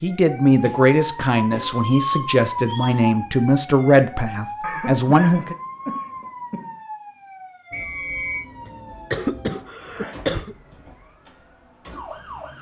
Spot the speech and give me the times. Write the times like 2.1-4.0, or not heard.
0.0-5.5.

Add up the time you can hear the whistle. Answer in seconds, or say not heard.
2 s.